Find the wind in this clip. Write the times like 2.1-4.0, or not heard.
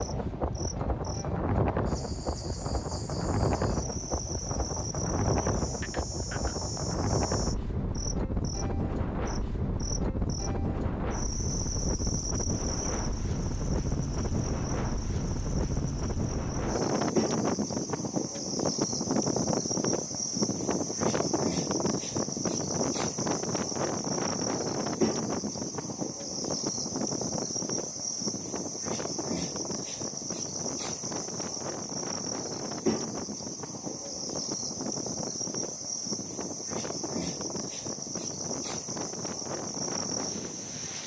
0.0-41.0.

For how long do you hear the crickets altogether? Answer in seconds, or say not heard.
41 s.